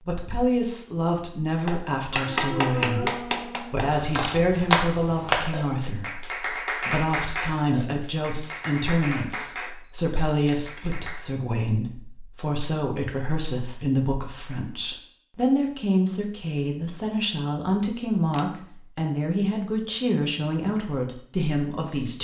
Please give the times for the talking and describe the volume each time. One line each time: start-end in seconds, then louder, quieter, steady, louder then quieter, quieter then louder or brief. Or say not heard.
0.0-22.1 steady.